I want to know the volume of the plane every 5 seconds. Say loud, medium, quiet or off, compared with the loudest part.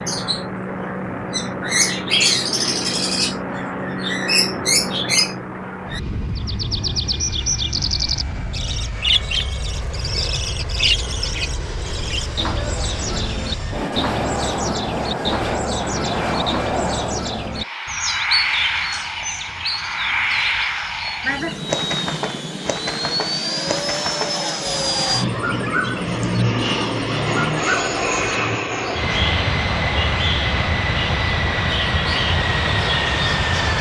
medium, medium, medium, loud, loud, loud, loud.